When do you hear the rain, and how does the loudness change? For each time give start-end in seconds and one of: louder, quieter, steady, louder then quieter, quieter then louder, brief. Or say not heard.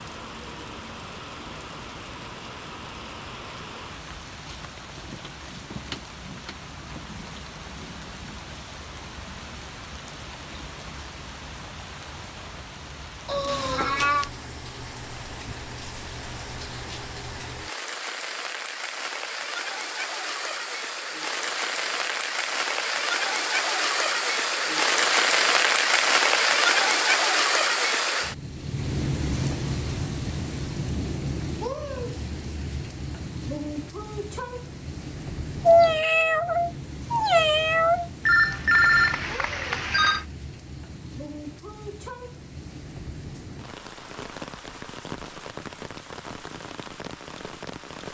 0.0-48.0 louder then quieter.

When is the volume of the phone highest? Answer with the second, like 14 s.
39 s.